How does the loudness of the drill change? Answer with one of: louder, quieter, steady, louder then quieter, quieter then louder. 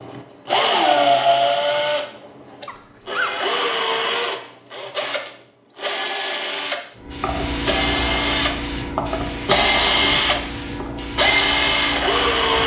quieter then louder.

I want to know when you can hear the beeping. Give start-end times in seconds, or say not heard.
not heard.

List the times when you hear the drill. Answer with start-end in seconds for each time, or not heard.
0.0-12.6.